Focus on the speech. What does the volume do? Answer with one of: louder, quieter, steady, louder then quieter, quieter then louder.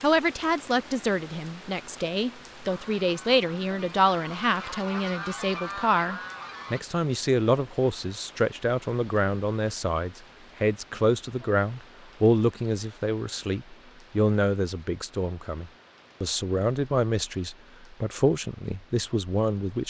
steady.